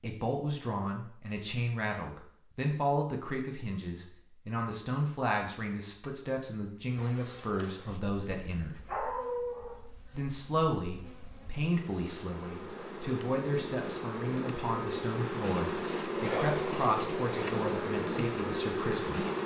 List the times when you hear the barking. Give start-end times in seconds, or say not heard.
8.7-9.8.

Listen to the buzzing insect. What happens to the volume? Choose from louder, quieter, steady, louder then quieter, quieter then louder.
louder.